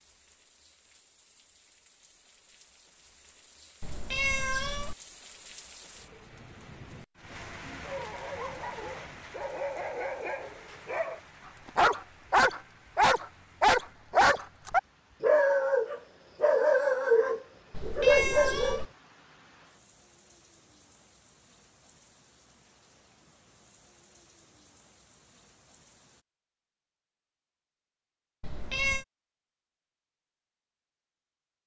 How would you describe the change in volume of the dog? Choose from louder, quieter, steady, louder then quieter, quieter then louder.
louder.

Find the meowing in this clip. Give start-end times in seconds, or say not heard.
3.8-5.0, 17.7-18.9, 28.4-29.1.